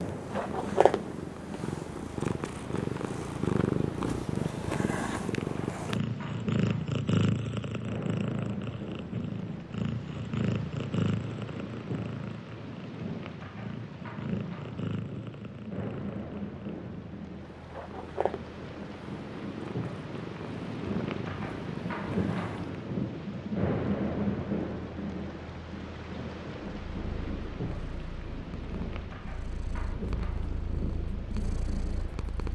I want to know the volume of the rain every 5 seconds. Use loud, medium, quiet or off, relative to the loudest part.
medium, medium, medium, medium, loud, medium, medium.